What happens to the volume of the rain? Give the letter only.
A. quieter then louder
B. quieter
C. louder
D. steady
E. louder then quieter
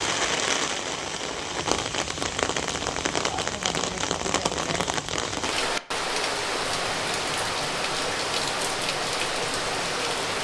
D.